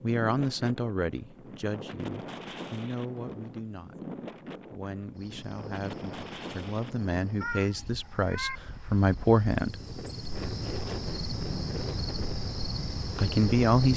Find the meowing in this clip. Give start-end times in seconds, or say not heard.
7.4-8.6.